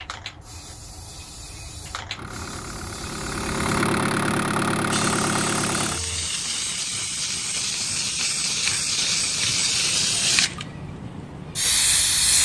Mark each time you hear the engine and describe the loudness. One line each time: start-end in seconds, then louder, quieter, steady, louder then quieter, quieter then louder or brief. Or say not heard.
2.1-6.3 louder.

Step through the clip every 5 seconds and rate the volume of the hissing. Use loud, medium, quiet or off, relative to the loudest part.
quiet, loud, loud.